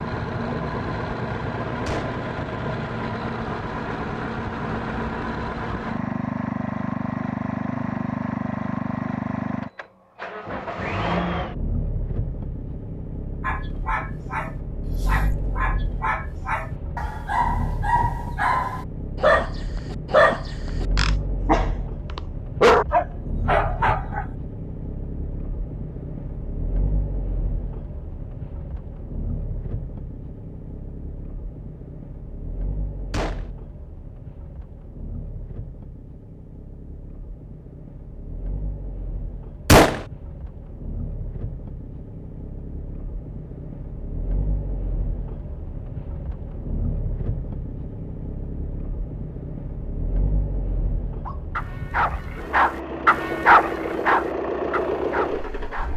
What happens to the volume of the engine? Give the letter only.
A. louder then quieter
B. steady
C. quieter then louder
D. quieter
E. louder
C.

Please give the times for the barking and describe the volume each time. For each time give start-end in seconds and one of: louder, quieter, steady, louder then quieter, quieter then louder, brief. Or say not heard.
13.4-24.2 louder
51.2-55.9 louder then quieter.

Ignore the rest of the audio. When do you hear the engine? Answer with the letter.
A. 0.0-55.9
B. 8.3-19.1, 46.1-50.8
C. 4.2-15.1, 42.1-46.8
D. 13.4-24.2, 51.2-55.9
A.